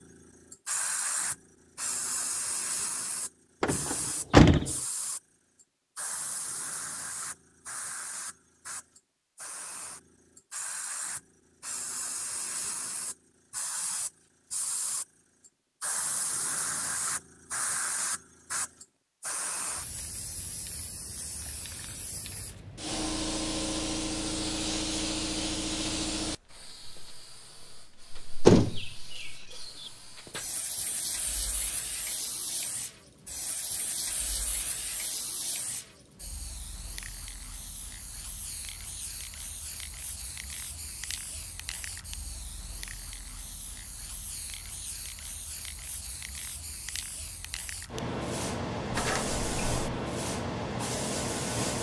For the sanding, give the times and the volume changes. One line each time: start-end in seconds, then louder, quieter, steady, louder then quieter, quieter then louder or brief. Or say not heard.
not heard.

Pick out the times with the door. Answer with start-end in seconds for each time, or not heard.
3.6-4.8, 28.4-29.2, 48.9-50.0.